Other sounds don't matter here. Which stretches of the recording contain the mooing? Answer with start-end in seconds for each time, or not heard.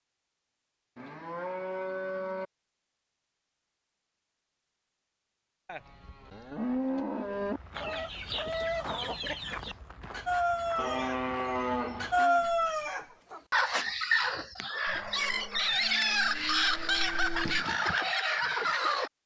0.9-2.5, 5.7-7.6, 10.8-12.4, 14.8-17.6.